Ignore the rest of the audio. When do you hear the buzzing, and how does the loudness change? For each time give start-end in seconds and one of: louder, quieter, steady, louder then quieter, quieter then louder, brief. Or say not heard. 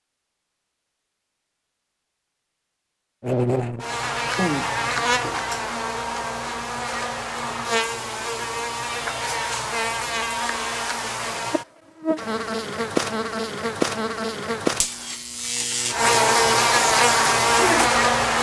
3.2-18.3 louder.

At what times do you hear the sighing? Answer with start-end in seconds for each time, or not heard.
4.2-4.8.